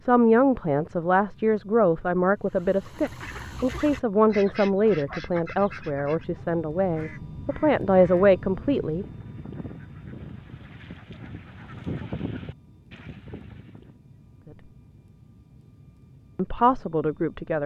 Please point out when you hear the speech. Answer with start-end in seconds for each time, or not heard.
0.0-9.1, 16.4-17.6.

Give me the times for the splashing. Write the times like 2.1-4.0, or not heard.
not heard.